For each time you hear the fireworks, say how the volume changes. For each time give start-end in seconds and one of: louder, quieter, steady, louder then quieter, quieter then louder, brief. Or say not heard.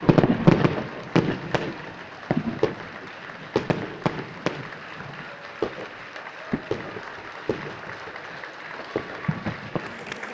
0.0-10.2 quieter.